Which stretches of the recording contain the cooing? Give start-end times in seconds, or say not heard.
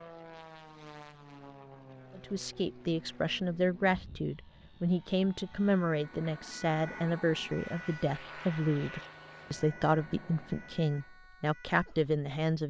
not heard.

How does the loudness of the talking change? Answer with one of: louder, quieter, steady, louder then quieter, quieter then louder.
steady.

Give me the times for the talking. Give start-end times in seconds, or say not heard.
2.1-12.6.